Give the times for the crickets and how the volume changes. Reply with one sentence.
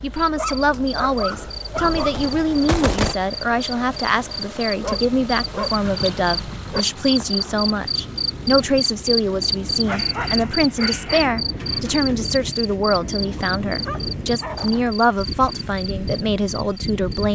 The crickets can be heard from 0.1 to 17.2 s, getting louder then quieter.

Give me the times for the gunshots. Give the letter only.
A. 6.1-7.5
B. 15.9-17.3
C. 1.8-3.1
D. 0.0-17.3
C.